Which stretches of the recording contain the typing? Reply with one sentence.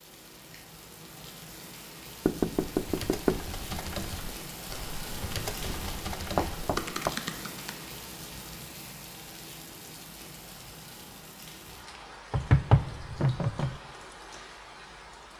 You can hear the typing from 2.8 to 7.8 s.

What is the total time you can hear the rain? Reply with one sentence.
You can hear the rain for 15 seconds altogether.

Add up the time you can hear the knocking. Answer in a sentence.
The knocking can be heard for 3 seconds in total.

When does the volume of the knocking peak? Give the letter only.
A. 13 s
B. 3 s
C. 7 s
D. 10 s
A.